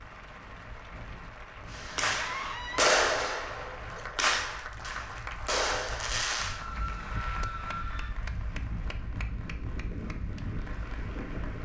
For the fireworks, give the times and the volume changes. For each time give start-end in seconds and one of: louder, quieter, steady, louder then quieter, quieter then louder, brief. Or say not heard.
1.7-6.7 quieter then louder.